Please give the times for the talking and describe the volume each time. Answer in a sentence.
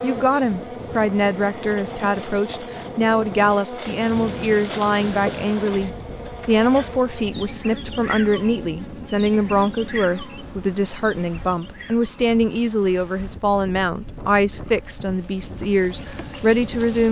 The talking can be heard from 0.0 to 17.0 s, at a steady volume.